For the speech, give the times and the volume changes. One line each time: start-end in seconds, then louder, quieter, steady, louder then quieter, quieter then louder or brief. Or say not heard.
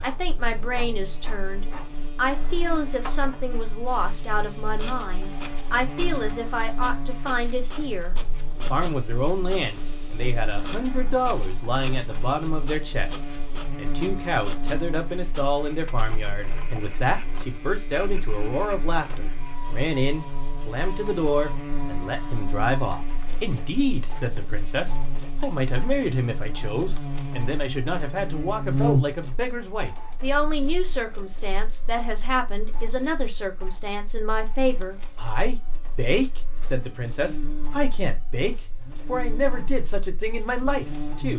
0.0-41.3 steady.